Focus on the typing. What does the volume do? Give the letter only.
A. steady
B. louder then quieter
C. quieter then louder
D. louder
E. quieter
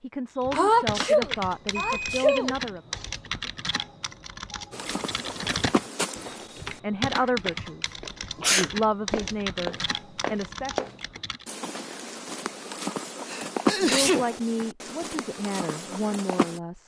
A.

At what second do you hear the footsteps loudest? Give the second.
14 s.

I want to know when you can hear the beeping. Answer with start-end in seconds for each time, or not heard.
1.7-2.5.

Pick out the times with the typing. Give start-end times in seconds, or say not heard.
0.4-11.4.